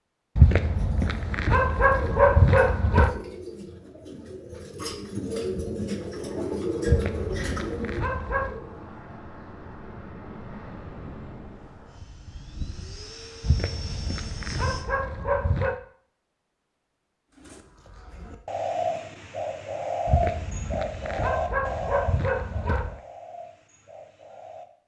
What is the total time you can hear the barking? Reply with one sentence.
The barking can be heard for 10 seconds in total.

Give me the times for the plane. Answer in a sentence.
The plane can be heard from 6.2 to 14.8 s.